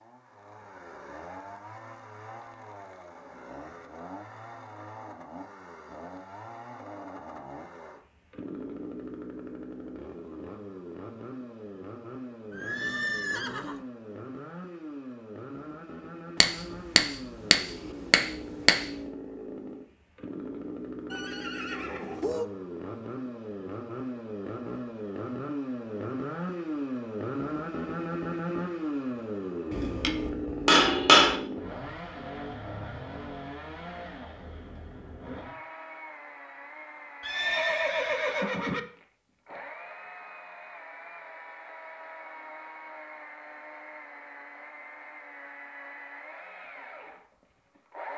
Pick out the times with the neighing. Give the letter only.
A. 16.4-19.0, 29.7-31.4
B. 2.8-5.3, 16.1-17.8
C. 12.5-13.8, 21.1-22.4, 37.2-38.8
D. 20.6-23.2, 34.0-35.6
C.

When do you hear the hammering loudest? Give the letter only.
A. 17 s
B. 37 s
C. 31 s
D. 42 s
C.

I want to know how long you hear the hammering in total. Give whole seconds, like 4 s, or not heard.
4 s.